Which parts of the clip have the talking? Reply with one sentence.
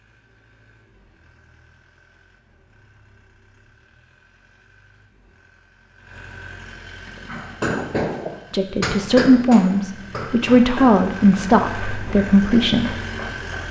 You can hear the talking from 8.5 to 12.9 s.